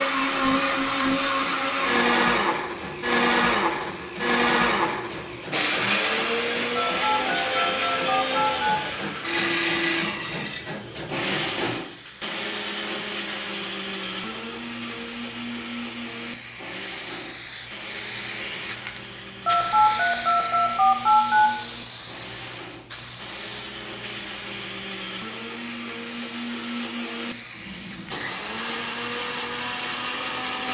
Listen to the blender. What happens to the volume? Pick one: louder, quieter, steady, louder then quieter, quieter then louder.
quieter then louder.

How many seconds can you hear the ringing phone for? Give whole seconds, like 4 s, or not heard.
4 s.